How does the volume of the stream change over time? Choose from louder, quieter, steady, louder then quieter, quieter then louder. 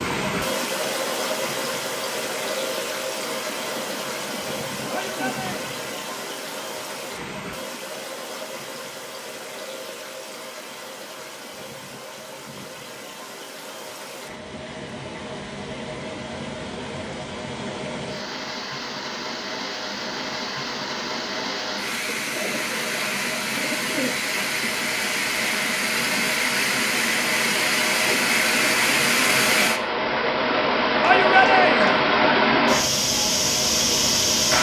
quieter then louder.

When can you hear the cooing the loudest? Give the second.
24 s.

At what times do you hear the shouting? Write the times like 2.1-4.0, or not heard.
4.9-5.7, 31.0-32.0.